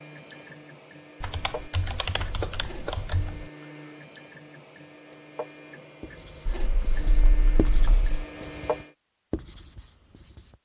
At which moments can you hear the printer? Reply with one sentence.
You can hear the printer from 0.0 to 8.9 s.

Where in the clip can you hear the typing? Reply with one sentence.
You can hear the typing from 1.2 to 3.5 s and from 6.5 to 8.1 s.